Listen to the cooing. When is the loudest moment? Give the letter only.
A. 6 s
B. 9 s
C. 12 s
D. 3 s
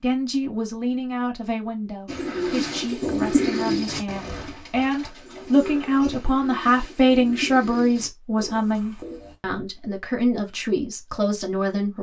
D.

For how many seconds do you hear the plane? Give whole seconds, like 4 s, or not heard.
not heard.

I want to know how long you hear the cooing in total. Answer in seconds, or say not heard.
7 s.